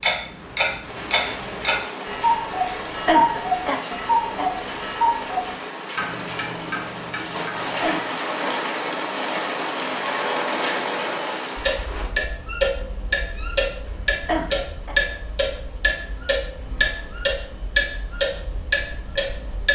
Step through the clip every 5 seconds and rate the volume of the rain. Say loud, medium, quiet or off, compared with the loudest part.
medium, loud, loud, off.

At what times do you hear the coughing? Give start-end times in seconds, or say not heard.
3.0-4.5, 7.8-8.7, 14.2-14.9.